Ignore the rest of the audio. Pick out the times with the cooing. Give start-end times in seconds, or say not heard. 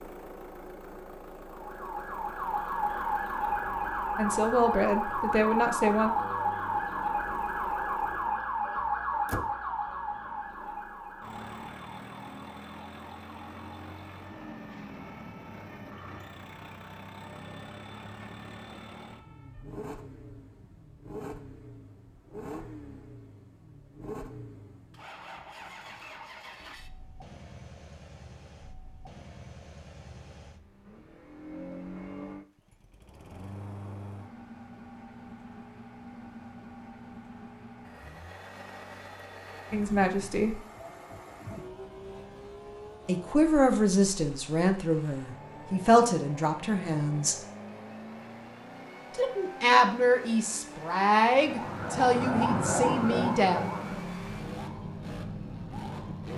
not heard.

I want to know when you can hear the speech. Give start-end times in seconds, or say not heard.
4.2-6.1, 39.7-40.6, 43.0-47.4, 49.1-53.8.